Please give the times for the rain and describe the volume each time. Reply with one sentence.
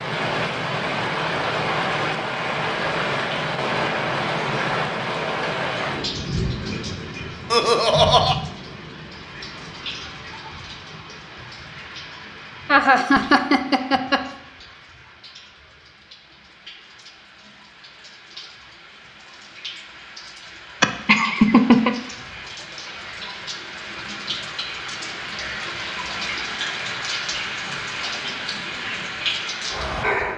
You can hear the rain from 0.0 to 30.3 s, getting quieter then louder.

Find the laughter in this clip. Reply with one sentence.
You can hear the laughter from 7.5 to 8.3 s, from 12.7 to 14.2 s and from 20.8 to 21.9 s.